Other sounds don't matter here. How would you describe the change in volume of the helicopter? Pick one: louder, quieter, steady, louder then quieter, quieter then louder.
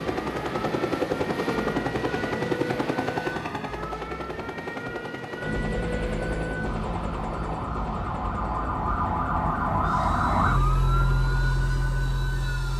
quieter.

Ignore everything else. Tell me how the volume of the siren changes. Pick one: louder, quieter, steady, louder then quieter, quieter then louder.
louder.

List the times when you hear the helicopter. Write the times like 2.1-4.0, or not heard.
0.0-12.7.